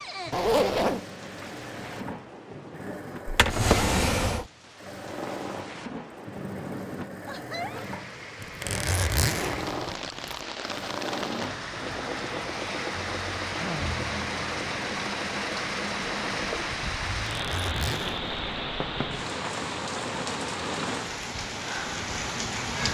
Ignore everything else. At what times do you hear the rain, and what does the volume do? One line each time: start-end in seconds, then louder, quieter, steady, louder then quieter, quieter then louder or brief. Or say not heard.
0.0-22.8 louder.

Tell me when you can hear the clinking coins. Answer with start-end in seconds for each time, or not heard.
not heard.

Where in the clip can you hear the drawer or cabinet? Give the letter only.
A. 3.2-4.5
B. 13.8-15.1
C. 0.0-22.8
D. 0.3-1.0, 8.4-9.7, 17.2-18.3
A.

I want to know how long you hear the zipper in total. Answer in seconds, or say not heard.
3 s.